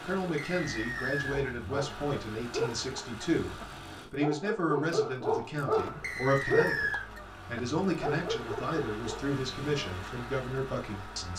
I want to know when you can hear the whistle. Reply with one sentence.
The whistle can be heard from 0.3 to 1.4 s and from 6.0 to 7.0 s.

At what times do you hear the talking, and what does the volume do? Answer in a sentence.
The talking can be heard from 0.0 to 11.3 s, at a steady volume.